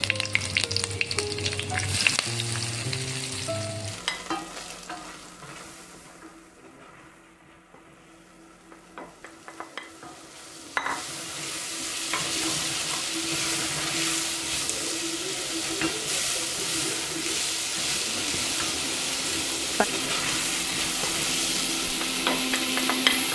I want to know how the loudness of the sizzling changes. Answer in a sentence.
The volume of the sizzling goes down, then up.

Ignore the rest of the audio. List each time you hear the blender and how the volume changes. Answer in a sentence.
The blender can be heard from 17.8 to 23.3 s, getting louder.